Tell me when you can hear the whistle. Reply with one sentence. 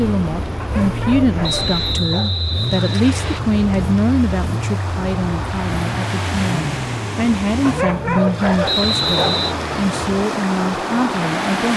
The whistle can be heard from 1.4 to 3.4 s and from 8.7 to 9.6 s.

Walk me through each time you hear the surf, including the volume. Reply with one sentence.
You can hear the surf from 0.0 to 11.7 s, getting louder.